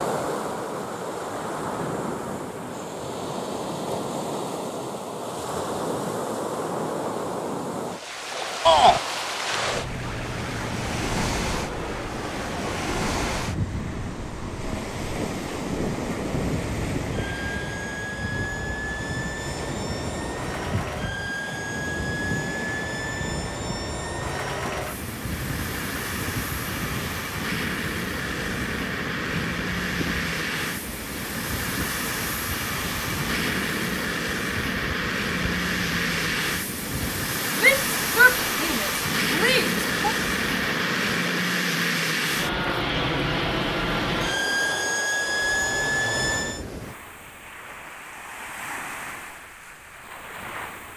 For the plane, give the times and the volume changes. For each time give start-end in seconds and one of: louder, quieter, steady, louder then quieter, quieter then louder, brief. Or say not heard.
9.4-46.6 louder.